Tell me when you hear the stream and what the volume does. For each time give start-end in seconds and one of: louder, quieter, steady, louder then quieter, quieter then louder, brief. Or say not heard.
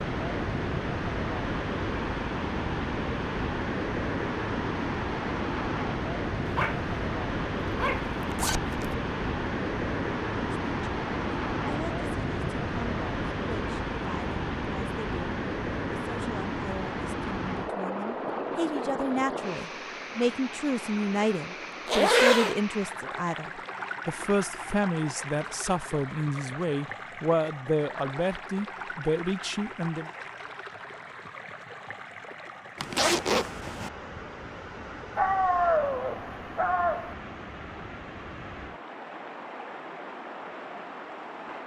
0.0-41.6 quieter.